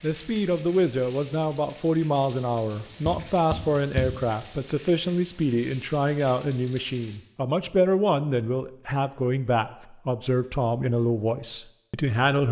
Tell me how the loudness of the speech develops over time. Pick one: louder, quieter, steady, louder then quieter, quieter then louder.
steady.